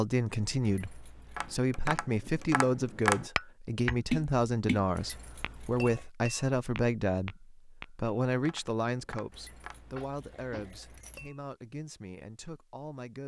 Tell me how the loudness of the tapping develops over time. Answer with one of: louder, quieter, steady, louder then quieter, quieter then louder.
quieter.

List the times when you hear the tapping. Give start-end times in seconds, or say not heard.
1.4-11.4.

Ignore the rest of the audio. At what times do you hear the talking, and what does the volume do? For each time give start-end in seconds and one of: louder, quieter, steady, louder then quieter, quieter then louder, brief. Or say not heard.
0.0-13.2 quieter.